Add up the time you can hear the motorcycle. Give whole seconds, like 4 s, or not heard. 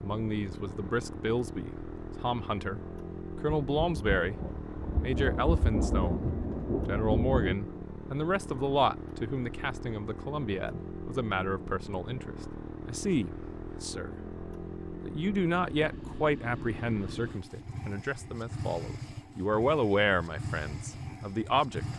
22 s.